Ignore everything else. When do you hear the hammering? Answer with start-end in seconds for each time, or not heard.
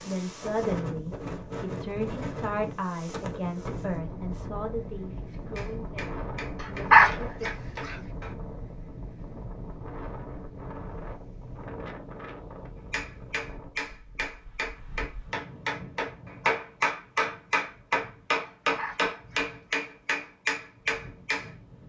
5.5-8.3, 12.9-21.5.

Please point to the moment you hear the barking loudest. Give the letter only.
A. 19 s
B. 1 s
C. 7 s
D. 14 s
C.